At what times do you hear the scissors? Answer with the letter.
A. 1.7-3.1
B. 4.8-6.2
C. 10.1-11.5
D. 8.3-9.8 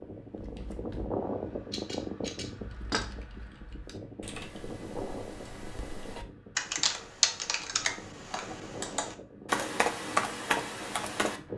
A.